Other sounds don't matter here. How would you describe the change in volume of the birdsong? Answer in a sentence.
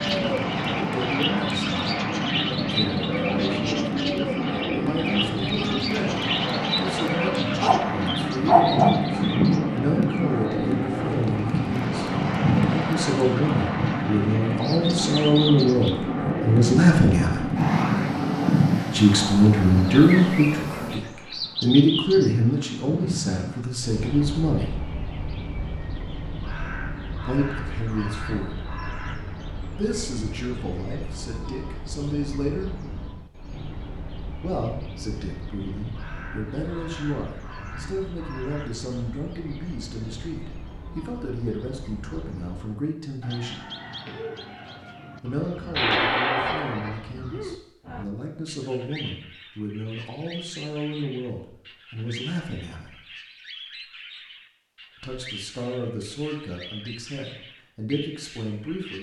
The loudness of the birdsong goes down.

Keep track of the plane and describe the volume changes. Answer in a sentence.
The volume of the plane stays about the same.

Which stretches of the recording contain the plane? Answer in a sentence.
The plane can be heard from 0.0 to 21.0 s.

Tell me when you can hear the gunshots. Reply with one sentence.
You can hear the gunshots from 45.7 to 47.0 s.